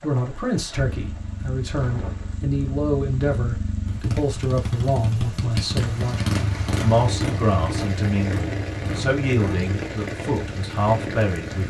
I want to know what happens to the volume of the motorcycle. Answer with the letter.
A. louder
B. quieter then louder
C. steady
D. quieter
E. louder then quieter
E.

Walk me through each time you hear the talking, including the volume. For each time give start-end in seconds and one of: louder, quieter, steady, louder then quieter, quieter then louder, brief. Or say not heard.
0.0-11.6 steady.